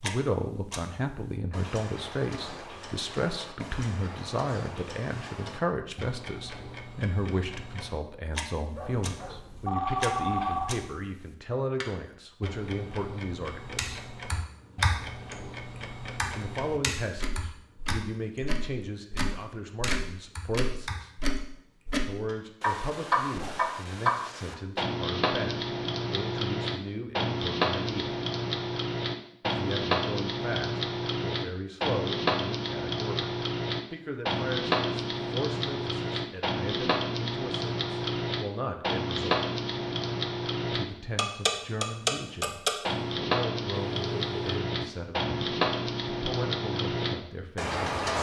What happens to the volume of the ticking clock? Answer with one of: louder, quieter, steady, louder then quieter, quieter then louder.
louder.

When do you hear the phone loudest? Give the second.
10 s.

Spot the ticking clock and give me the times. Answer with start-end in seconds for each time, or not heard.
0.0-48.1.